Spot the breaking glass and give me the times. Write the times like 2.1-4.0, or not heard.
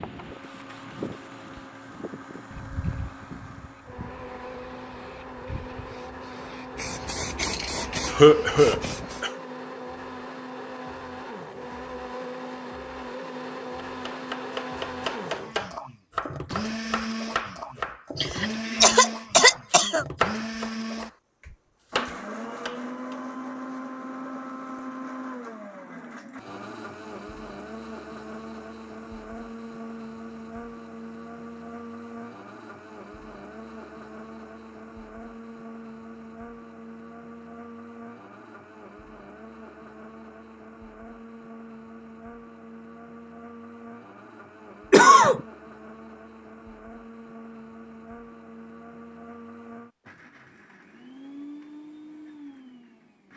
not heard.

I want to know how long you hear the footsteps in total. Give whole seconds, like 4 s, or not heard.
not heard.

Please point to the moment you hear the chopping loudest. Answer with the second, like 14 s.
20 s.